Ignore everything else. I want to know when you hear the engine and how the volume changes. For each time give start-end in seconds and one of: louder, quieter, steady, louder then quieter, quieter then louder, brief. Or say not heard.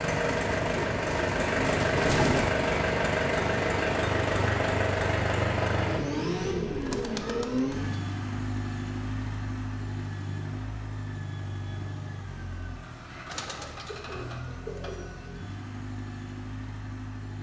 0.0-17.3 quieter.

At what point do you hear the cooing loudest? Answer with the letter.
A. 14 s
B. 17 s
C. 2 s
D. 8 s
C.